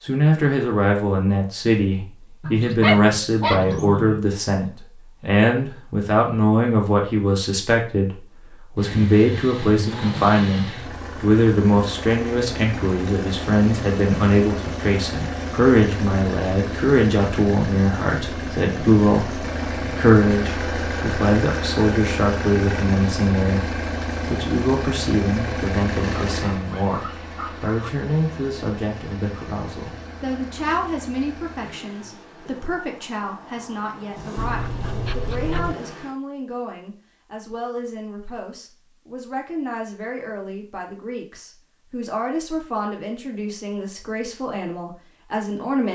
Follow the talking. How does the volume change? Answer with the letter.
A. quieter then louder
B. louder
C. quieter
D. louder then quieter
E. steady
C.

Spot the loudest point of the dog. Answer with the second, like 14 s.
3 s.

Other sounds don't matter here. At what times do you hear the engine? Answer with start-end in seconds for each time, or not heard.
8.8-36.1.